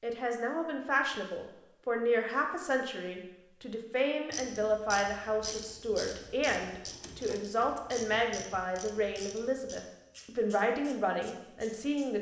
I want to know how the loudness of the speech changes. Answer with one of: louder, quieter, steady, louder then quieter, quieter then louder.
steady.